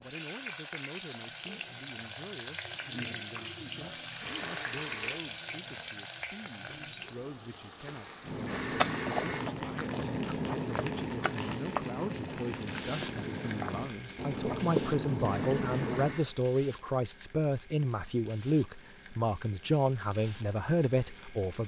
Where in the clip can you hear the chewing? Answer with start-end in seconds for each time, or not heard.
8.2-16.1.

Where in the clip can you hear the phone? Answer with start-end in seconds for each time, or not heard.
4.2-5.3, 8.4-9.6, 15.2-16.4.